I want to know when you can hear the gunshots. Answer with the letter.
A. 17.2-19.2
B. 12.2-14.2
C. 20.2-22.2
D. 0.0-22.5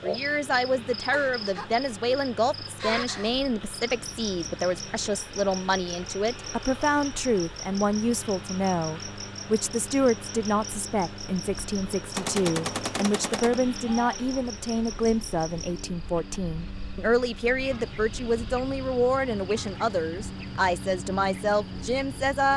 B.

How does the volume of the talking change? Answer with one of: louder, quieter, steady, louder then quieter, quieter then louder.
steady.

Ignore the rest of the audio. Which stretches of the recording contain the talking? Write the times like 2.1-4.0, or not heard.
0.0-22.5.